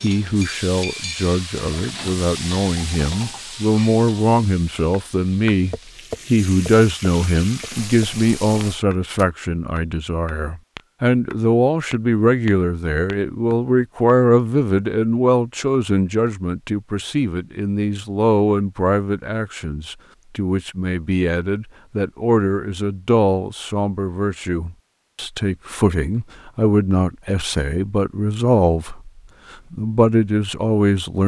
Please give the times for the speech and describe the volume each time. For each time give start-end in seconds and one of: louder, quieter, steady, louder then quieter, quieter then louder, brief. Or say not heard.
0.0-31.2 steady.